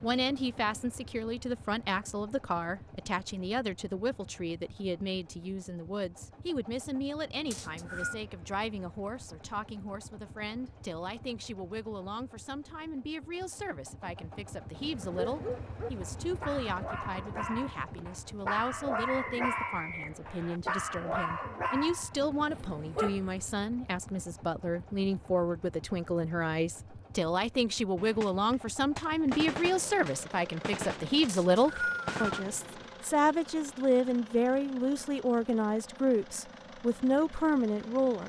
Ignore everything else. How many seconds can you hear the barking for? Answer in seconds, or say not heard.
8 s.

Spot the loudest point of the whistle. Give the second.
32 s.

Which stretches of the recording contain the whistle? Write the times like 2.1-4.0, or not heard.
7.5-8.2, 19.1-20.6, 31.2-32.2.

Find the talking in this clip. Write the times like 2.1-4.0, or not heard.
0.0-38.2.